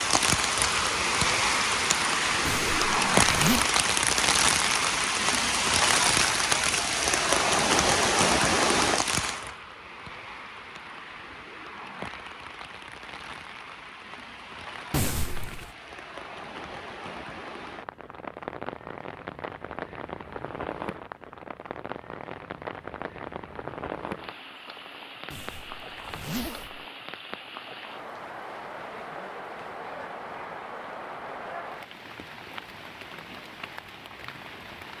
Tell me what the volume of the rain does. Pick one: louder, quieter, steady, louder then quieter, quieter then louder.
quieter.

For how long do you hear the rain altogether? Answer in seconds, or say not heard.
35 s.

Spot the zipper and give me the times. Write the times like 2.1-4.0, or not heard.
2.5-3.6, 14.9-15.7, 25.3-26.9.